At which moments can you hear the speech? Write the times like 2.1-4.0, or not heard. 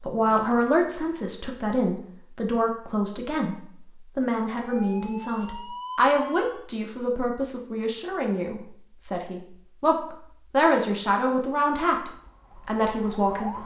0.0-13.6.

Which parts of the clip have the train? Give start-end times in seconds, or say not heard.
not heard.